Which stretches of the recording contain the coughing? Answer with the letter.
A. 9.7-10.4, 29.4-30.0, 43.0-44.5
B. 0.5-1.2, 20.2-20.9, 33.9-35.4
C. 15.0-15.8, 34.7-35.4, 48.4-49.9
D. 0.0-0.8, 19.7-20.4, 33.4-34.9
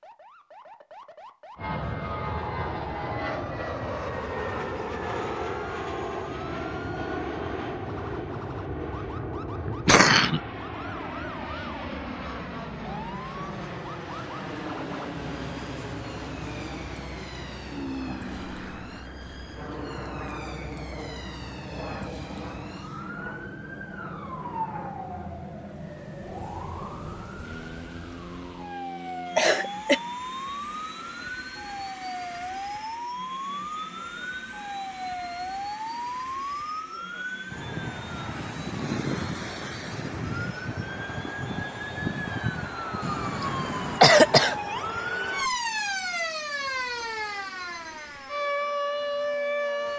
A.